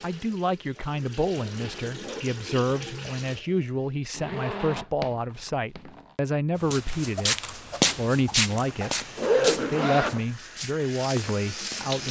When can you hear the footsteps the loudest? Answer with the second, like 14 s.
8 s.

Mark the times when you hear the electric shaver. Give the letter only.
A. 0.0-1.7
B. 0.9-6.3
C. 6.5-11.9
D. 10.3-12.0
D.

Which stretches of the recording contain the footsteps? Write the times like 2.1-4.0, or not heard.
6.5-11.9.